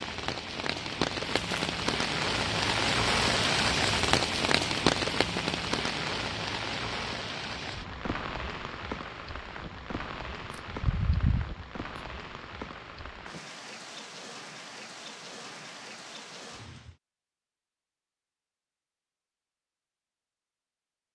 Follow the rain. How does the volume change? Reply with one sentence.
The loudness of the rain goes down.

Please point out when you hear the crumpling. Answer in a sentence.
The crumpling can be heard from 1.3 to 1.8 s.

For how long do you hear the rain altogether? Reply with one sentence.
The rain can be heard for 17 seconds in total.